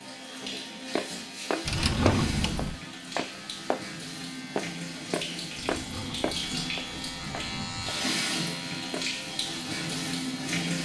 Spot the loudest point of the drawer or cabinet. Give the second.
2 s.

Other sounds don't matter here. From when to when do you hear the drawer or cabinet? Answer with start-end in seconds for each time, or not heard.
1.6-2.8, 5.5-8.1.